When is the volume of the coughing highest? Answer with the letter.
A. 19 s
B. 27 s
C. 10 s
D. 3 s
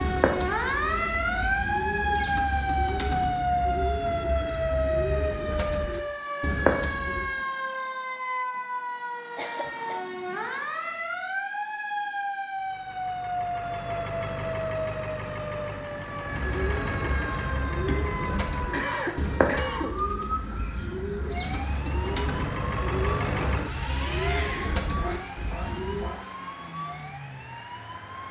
A.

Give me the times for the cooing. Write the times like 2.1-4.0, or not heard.
0.0-7.3, 16.2-26.1.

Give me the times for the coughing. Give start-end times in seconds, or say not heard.
9.3-10.1, 17.8-19.9.